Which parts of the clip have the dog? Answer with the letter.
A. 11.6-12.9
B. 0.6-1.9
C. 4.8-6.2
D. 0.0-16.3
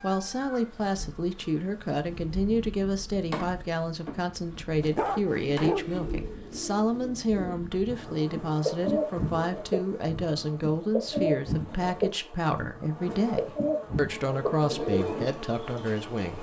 C.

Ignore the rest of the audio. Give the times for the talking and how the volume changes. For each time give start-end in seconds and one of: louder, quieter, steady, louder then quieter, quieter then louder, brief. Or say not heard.
0.0-16.3 steady.